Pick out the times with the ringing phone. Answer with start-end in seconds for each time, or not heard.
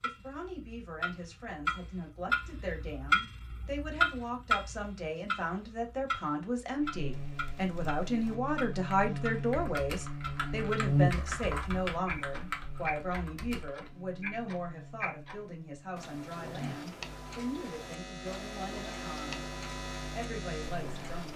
not heard.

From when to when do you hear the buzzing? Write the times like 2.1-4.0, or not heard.
6.8-21.2.